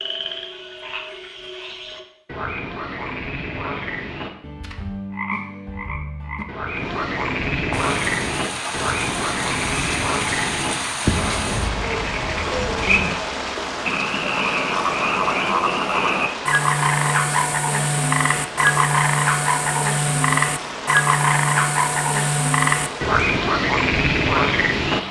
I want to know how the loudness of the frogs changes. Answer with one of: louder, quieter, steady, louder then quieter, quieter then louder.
louder.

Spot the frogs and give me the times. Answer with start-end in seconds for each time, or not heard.
0.0-25.0.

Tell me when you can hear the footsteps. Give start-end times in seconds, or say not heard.
not heard.